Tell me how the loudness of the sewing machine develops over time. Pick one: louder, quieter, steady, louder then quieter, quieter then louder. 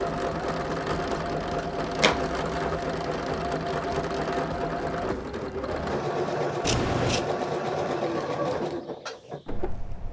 steady.